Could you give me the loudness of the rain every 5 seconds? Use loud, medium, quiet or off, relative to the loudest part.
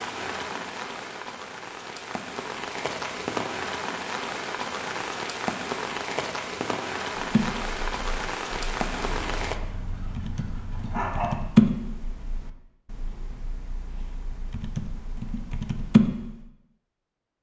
loud, loud, off, off.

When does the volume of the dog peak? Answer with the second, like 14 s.
11 s.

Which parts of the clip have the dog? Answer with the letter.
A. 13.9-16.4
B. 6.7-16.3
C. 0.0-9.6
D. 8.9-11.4
D.